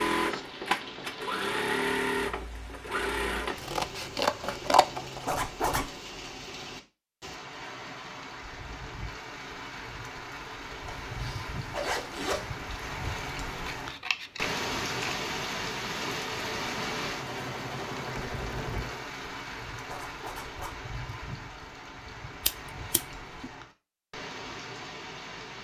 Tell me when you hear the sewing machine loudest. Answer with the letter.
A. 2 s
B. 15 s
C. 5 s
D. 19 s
A.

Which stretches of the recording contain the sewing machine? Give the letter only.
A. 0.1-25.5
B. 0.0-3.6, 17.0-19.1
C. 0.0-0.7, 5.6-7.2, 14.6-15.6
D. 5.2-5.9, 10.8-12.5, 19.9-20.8
B.